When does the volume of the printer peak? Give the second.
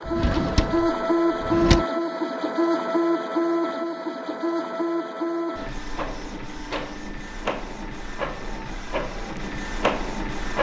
1 s.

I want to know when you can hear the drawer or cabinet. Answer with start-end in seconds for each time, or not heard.
0.1-1.9.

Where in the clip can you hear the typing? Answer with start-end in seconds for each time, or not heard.
not heard.